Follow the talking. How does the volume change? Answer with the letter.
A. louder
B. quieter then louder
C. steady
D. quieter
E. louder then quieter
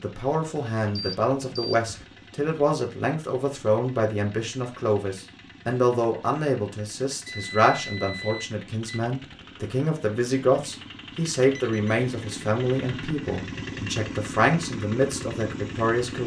C.